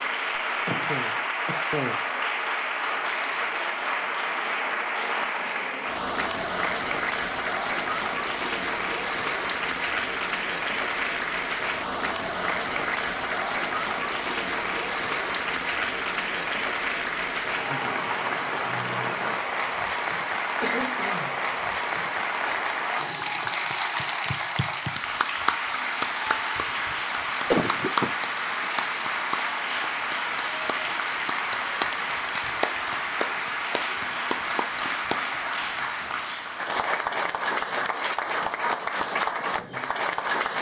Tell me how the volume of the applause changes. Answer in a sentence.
The volume of the applause stays about the same.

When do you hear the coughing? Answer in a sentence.
You can hear the coughing from 0.7 to 2.0 s, from 20.6 to 21.4 s and from 27.5 to 28.1 s.